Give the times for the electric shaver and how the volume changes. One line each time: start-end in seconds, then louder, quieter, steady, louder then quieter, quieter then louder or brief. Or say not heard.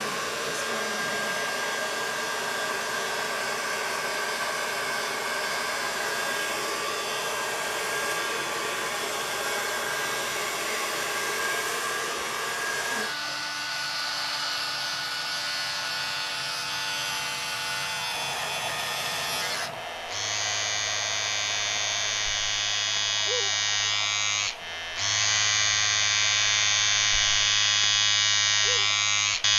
0.0-29.5 louder.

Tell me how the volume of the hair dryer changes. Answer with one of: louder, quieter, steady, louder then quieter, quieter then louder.
quieter.